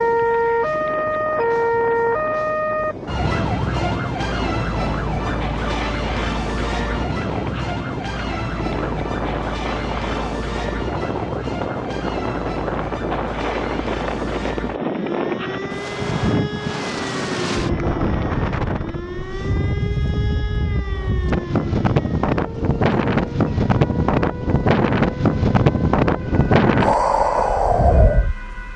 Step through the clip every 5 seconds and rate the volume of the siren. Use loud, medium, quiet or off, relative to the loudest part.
loud, medium, medium, medium, quiet, quiet.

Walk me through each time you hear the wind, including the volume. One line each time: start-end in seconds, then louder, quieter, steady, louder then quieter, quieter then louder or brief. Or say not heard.
0.0-28.7 louder.